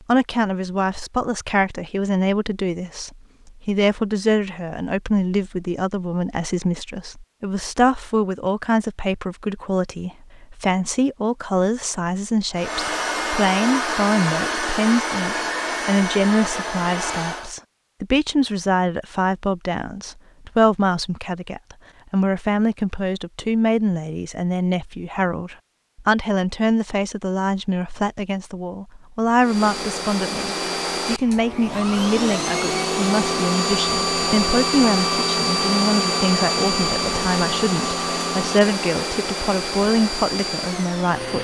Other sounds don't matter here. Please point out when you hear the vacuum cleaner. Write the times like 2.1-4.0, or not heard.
12.6-17.6, 29.4-41.4.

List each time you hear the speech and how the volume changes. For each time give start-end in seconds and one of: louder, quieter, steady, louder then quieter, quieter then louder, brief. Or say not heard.
0.1-41.4 steady.